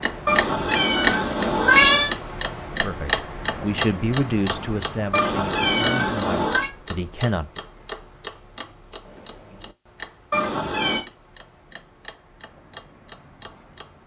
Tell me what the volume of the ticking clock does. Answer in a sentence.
The volume of the ticking clock goes down.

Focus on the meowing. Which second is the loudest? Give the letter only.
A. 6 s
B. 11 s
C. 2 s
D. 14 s
C.